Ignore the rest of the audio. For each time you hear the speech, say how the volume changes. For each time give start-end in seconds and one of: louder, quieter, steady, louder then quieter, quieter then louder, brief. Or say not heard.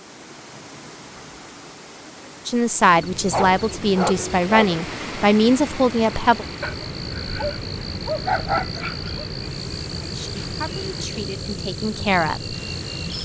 2.5-6.5 steady
10.0-12.6 brief.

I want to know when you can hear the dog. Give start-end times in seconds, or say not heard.
3.3-4.8, 6.6-9.2.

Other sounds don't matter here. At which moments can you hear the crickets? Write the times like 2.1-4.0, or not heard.
2.9-13.1.